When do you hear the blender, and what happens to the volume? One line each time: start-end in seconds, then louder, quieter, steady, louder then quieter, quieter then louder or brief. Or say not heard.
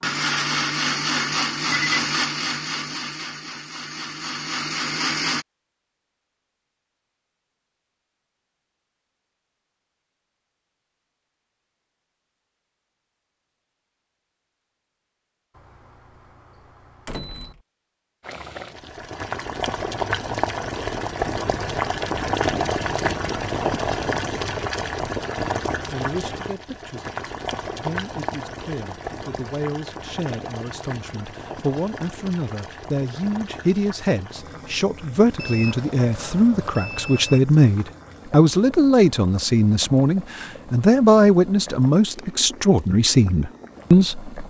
0.0-5.5 quieter then louder.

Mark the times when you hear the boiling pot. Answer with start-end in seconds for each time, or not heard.
18.2-44.4.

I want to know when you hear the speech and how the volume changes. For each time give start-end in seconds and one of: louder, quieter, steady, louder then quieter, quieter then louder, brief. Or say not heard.
25.9-44.4 louder.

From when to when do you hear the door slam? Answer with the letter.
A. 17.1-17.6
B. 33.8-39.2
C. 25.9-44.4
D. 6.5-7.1
A.